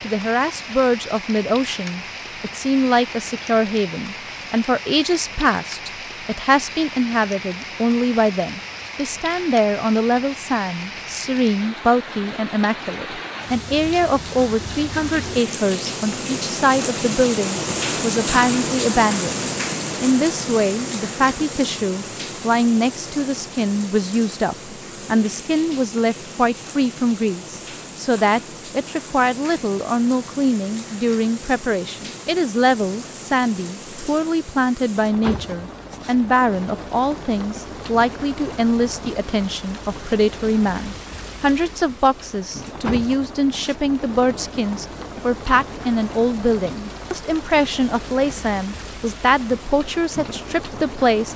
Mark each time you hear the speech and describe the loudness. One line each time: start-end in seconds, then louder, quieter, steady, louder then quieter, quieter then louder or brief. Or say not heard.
0.0-51.3 steady.